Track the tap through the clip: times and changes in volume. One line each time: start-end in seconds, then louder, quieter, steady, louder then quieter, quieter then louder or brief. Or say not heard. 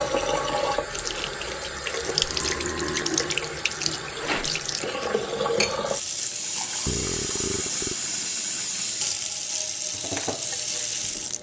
0.0-11.3 steady.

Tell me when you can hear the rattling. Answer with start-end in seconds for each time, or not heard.
4.2-4.6.